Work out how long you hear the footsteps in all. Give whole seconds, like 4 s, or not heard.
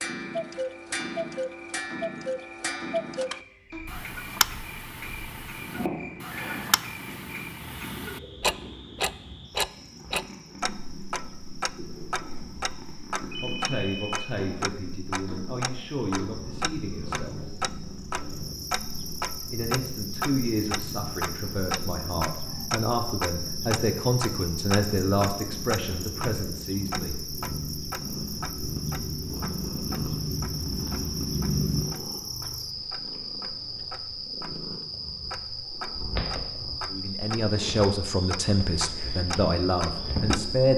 not heard.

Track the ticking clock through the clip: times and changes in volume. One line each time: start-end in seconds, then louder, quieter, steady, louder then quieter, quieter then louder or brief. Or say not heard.
0.0-40.7 quieter.